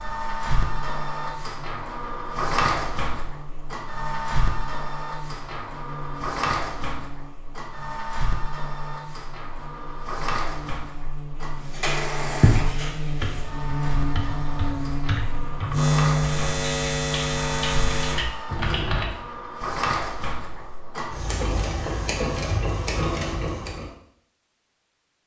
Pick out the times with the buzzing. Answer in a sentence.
You can hear the buzzing from 0.2 to 18.2 s.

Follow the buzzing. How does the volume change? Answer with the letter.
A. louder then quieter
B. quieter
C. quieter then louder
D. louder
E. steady
D.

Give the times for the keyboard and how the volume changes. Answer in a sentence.
You can hear the keyboard from 12.2 to 19.1 s, getting louder.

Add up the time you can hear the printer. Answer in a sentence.
You can hear the printer for 24 seconds altogether.